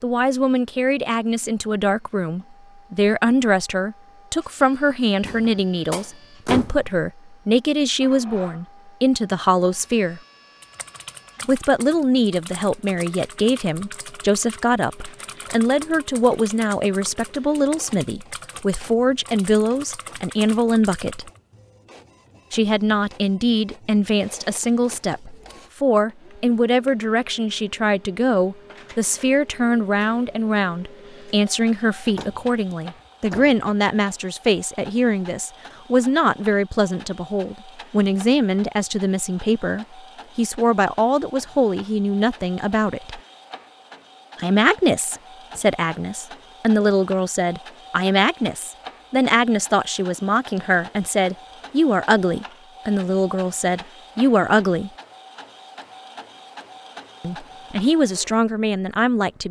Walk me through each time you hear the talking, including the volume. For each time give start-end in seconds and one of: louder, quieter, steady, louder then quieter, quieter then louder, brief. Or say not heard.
0.0-10.2 steady
11.4-21.3 steady
22.5-43.2 steady
44.4-54.9 steady
57.2-59.4 brief.